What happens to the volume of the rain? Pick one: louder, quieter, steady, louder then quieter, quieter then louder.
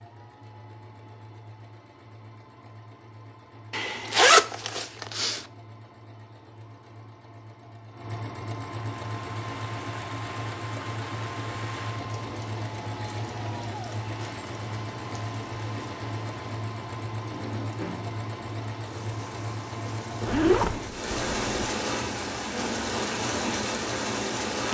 louder.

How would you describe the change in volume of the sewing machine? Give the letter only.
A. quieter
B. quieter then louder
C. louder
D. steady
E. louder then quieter
C.